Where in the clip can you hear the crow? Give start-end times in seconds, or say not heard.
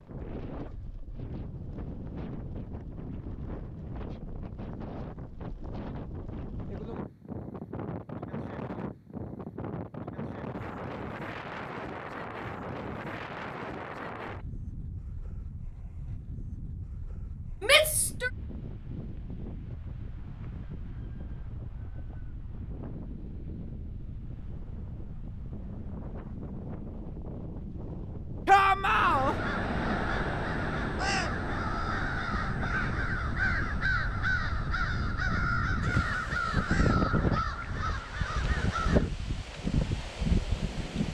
28.9-39.1.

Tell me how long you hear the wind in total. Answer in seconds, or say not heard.
41 s.